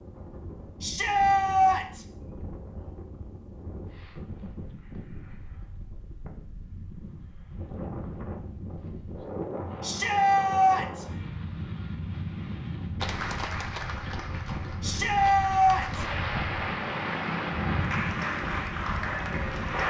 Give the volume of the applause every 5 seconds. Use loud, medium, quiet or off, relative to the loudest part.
off, off, loud, loud.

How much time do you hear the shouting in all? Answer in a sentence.
The shouting can be heard for 4 seconds in total.